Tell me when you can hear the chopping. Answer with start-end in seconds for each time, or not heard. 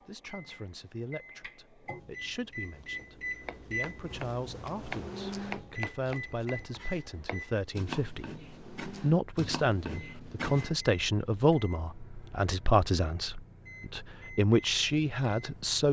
3.4-10.8.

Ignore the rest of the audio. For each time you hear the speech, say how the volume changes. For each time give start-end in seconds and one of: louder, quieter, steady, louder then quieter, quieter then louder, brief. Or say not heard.
0.1-15.8 louder.